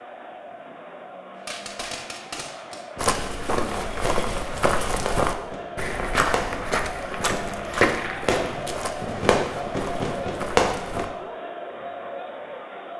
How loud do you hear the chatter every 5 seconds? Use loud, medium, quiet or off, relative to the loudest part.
medium, loud, loud.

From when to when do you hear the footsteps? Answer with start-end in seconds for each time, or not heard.
3.0-11.1.